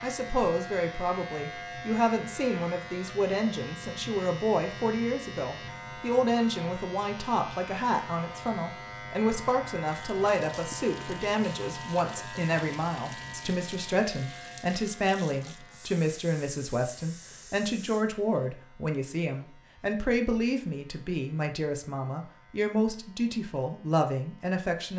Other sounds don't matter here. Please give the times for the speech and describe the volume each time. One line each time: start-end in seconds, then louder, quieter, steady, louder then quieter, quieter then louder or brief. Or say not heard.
0.0-24.9 steady.